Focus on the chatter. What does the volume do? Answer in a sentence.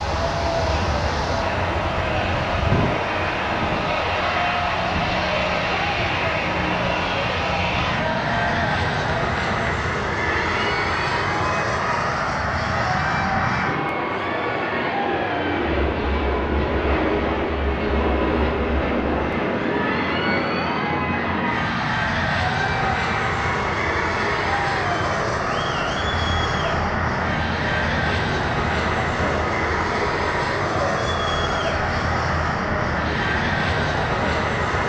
The loudness of the chatter stays about the same.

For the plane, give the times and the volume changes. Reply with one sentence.
You can hear the plane from 0.0 to 34.8 s, at a steady volume.